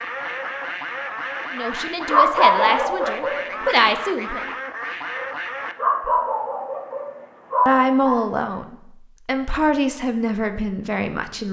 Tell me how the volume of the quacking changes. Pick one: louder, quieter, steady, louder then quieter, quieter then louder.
steady.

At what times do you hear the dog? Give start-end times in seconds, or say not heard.
2.1-3.4, 5.8-8.2.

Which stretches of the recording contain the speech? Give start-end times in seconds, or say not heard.
1.5-4.4, 7.7-11.4.